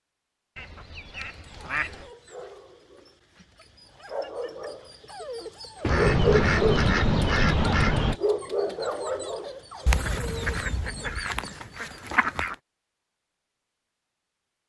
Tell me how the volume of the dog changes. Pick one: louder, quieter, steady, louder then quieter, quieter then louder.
louder then quieter.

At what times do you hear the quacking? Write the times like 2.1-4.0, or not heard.
0.6-2.1, 5.8-8.2, 9.8-12.6.